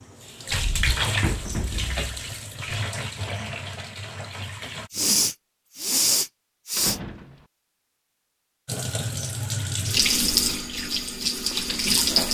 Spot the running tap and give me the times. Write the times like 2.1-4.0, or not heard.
0.0-4.9, 8.7-12.2.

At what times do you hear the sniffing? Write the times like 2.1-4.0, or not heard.
4.9-7.0.